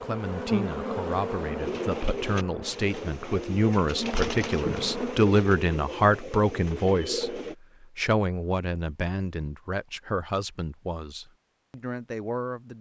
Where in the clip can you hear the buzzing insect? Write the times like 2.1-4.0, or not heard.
0.0-5.3.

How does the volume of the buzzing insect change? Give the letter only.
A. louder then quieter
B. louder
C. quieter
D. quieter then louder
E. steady
D.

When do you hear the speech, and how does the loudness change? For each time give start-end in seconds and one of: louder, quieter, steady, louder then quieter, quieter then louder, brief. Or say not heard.
0.0-12.7 louder then quieter.